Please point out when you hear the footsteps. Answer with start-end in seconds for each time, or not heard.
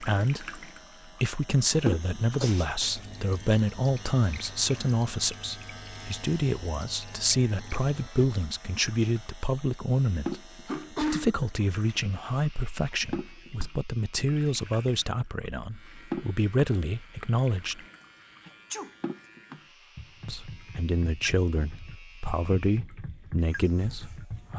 not heard.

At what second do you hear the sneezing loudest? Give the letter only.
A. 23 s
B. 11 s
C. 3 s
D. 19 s
B.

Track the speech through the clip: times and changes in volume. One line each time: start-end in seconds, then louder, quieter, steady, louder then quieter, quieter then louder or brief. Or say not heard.
0.0-17.8 steady
20.2-24.5 steady.